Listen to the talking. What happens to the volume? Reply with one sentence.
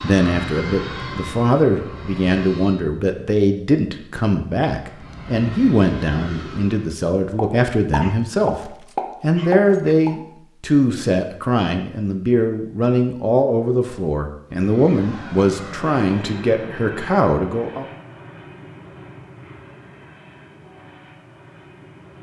The loudness of the talking stays about the same.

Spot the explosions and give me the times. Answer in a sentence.
The explosions can be heard from 7.3 to 10.2 s.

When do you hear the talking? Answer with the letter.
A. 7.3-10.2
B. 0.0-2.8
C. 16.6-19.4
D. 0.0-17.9
D.